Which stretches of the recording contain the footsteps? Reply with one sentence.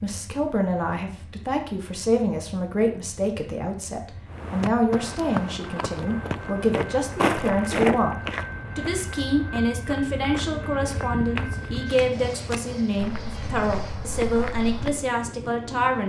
You can hear the footsteps from 4.3 to 15.1 s.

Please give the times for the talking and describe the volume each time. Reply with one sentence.
You can hear the talking from 0.0 to 16.0 s, at a steady volume.